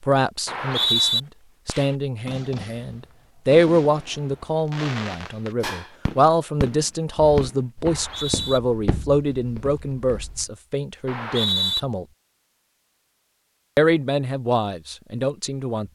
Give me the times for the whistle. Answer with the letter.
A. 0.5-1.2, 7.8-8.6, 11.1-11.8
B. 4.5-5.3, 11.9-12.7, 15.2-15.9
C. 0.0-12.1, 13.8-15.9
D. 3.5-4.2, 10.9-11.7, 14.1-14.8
A.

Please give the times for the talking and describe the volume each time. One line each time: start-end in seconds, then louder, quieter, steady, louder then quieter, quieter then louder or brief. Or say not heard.
0.0-12.1 louder then quieter
13.8-15.9 brief.